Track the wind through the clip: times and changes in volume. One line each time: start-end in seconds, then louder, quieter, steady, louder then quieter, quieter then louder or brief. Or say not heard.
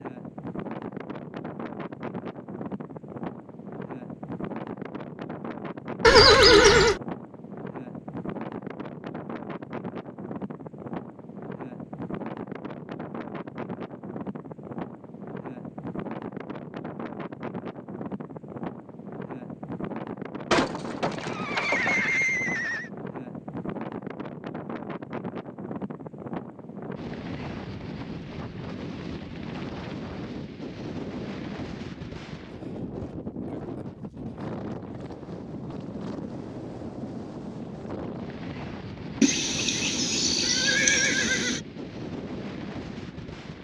0.0-43.5 steady.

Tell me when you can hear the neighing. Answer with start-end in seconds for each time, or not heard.
6.0-7.0, 20.5-22.9, 39.2-41.6.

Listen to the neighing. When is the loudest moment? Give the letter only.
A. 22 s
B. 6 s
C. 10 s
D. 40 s
B.